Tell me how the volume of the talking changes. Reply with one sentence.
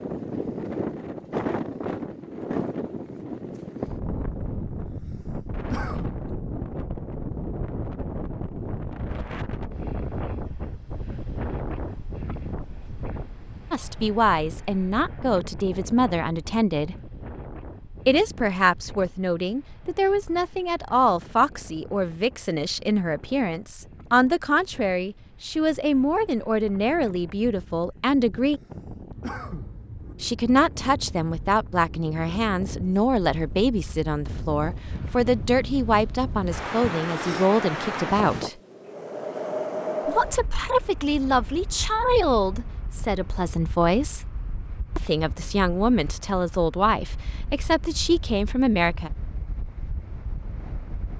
The loudness of the talking stays about the same.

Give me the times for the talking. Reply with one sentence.
The talking can be heard from 13.7 to 16.9 s, from 18.1 to 28.6 s, from 30.2 to 38.5 s, from 40.0 to 44.2 s and from 45.0 to 49.1 s.